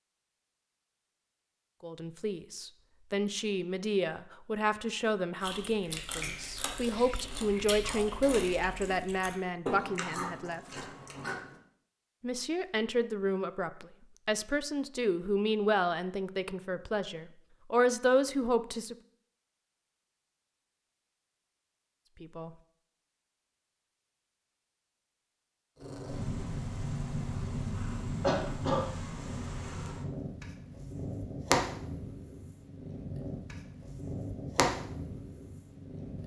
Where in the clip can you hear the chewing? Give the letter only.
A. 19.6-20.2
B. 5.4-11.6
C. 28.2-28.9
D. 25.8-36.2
B.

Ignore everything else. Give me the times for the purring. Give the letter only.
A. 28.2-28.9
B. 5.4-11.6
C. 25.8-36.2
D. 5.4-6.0
C.